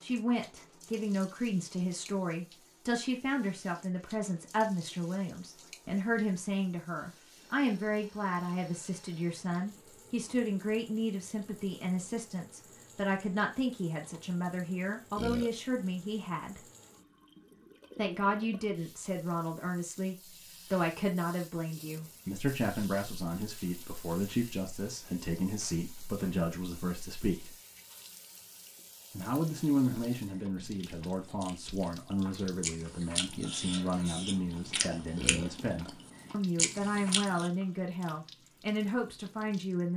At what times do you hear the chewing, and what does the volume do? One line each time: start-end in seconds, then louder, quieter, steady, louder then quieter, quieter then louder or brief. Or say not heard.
29.6-37.5 louder.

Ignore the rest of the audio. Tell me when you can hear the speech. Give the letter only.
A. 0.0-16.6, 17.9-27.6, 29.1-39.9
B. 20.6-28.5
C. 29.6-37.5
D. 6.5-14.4
A.